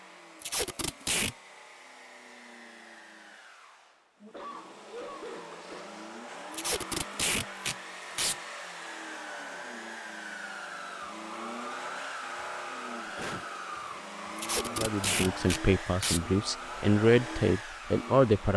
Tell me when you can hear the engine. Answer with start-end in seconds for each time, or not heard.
0.0-18.5.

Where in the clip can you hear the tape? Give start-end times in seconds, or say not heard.
0.4-1.4, 6.5-8.3, 14.3-16.2.